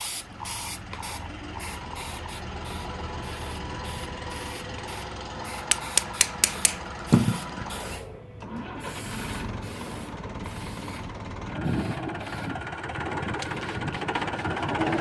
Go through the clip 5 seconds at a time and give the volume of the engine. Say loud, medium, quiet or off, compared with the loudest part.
medium, medium, loud.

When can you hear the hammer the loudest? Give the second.
7 s.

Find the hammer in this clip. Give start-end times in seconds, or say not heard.
5.7-7.5.